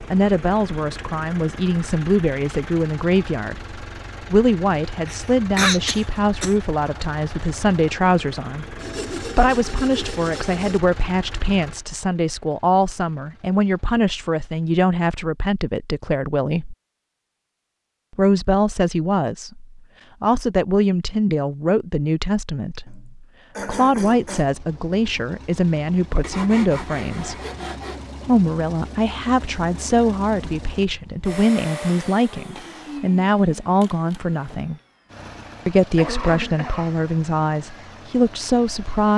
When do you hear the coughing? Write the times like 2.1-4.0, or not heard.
5.0-6.5, 22.9-24.6, 35.8-37.0.